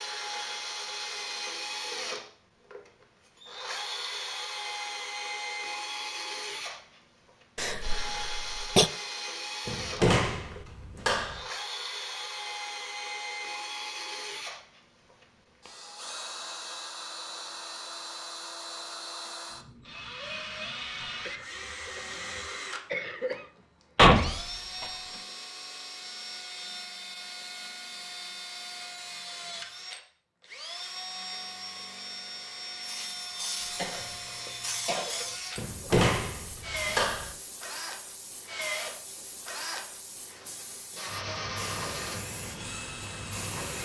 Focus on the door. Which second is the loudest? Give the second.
24 s.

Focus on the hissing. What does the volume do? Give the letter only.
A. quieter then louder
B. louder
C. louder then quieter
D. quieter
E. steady
A.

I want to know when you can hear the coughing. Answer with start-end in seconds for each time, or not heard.
7.5-8.9, 21.2-23.5, 33.8-35.4.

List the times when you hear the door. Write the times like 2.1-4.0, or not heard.
9.7-11.4, 23.9-24.9, 35.5-37.4.